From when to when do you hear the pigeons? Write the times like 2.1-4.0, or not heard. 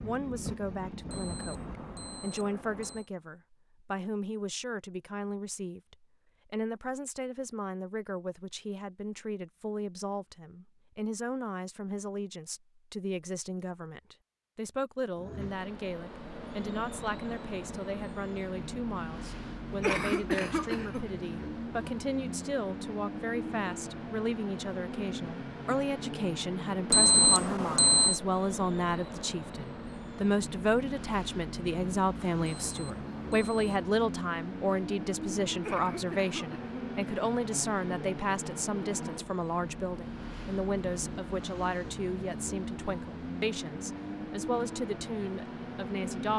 not heard.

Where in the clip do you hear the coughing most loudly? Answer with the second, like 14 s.
20 s.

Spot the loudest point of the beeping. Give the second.
27 s.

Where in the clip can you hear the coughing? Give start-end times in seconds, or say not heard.
19.8-21.4, 35.6-36.8.